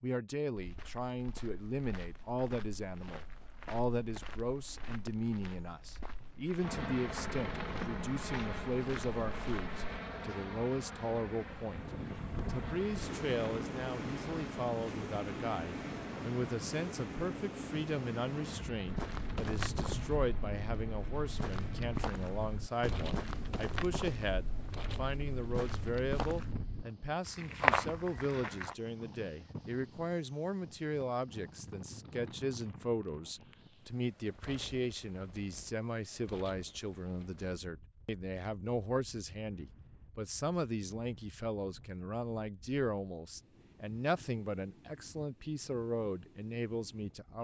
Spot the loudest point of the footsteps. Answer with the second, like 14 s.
28 s.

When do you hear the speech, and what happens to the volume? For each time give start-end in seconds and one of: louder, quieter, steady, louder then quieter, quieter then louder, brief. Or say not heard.
0.0-47.3 steady.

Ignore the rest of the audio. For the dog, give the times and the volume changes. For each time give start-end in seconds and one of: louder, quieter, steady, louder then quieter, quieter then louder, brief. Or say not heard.
not heard.